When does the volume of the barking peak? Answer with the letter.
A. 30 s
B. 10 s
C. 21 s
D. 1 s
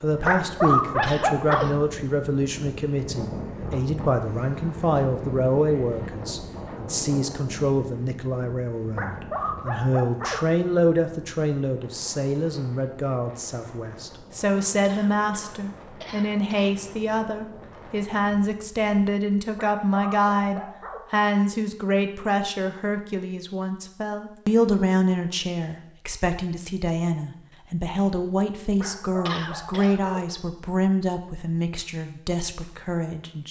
D.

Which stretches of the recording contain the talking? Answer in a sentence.
The talking can be heard from 0.0 to 33.4 s.